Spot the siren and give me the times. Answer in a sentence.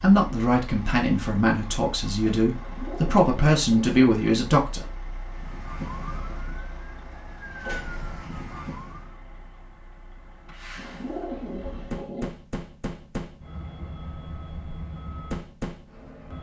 You can hear the siren from 5.3 to 9.2 s.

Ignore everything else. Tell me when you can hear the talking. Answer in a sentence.
The talking can be heard from 0.0 to 5.0 s.